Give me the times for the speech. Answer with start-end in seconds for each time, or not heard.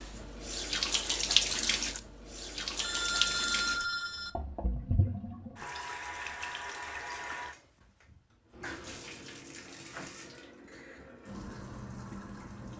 not heard.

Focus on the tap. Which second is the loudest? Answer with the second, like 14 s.
1 s.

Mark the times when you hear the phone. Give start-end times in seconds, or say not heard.
2.8-4.3.